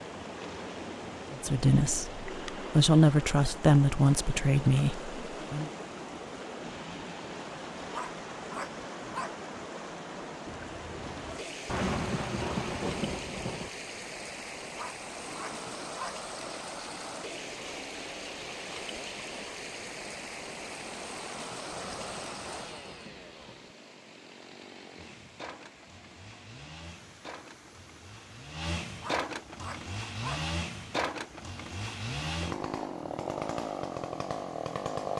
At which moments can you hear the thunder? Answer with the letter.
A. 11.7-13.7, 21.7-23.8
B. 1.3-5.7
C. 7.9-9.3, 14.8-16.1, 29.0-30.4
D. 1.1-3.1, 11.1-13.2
A.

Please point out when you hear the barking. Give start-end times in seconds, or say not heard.
7.9-9.3, 14.8-16.1, 29.0-30.4.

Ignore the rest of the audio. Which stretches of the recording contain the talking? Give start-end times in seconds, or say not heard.
1.3-5.7.